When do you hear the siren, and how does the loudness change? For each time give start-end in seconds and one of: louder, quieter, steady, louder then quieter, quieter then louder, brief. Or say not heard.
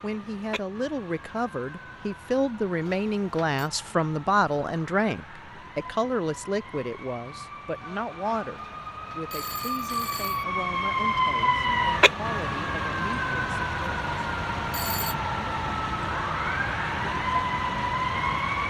0.0-18.6 louder.